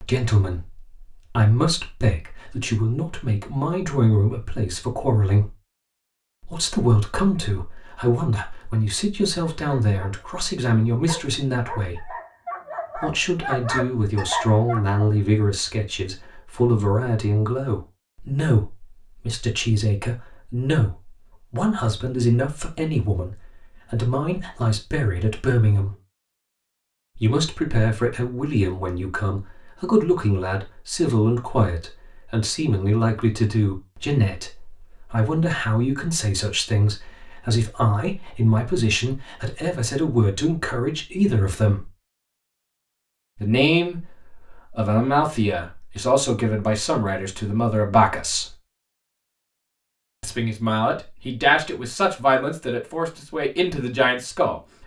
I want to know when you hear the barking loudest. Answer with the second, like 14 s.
14 s.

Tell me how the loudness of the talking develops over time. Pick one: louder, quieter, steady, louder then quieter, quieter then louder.
steady.